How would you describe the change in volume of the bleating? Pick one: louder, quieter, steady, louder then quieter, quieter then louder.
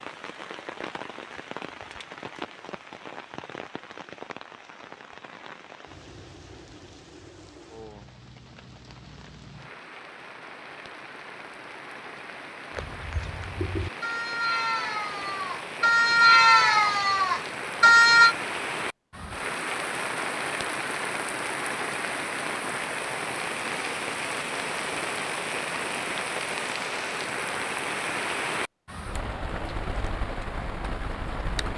louder.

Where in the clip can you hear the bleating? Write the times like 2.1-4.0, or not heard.
12.7-18.4.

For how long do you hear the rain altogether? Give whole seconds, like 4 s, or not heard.
32 s.